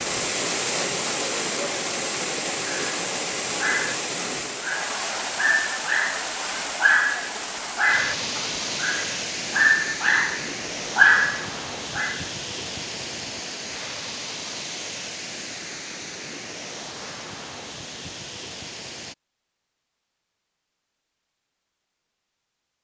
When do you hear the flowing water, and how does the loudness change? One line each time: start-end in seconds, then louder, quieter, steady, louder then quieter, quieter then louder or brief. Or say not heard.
0.0-19.1 quieter.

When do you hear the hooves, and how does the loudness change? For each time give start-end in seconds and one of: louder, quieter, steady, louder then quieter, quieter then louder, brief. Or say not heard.
not heard.